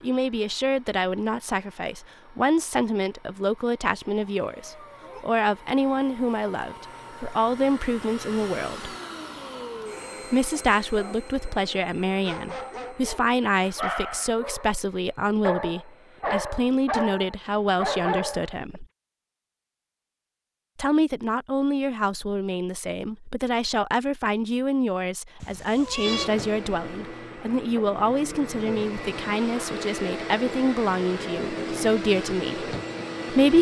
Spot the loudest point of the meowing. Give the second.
26 s.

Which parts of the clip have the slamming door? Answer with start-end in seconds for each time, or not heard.
not heard.